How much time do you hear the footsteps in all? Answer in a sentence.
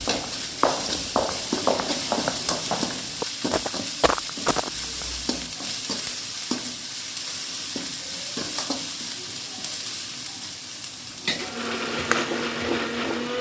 You can hear the footsteps for 5 seconds altogether.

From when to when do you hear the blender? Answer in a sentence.
You can hear the blender from 11.3 to 13.3 s.